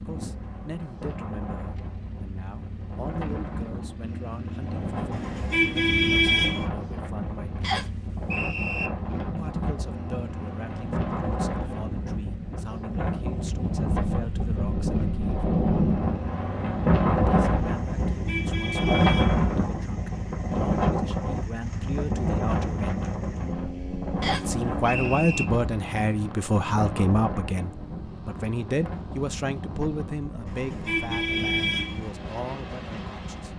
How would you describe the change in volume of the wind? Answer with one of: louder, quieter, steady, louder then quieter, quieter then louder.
louder then quieter.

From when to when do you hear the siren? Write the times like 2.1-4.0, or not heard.
not heard.